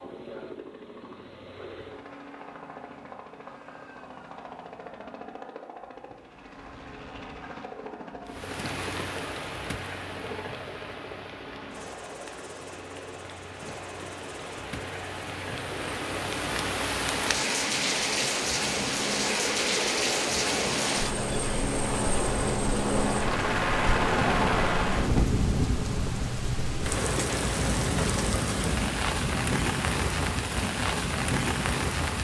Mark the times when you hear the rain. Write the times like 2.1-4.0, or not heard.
8.2-32.1.